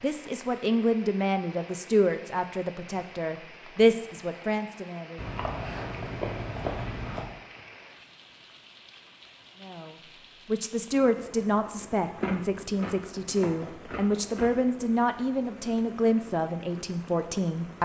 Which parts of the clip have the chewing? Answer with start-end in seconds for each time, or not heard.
5.2-7.3, 12.2-14.6.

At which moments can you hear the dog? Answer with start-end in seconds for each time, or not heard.
not heard.